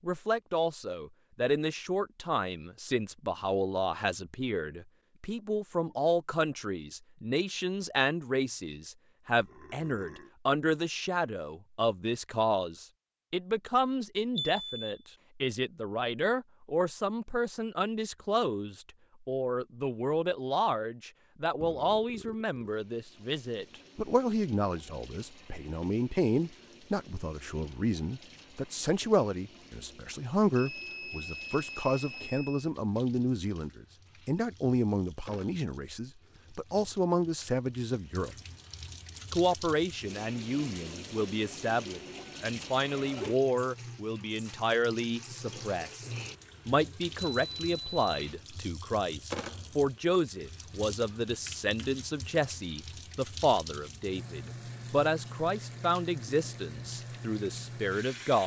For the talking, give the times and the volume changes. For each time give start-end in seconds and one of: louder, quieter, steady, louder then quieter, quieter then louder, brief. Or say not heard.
0.0-38.4 steady
39.3-46.0 steady
46.6-58.4 steady.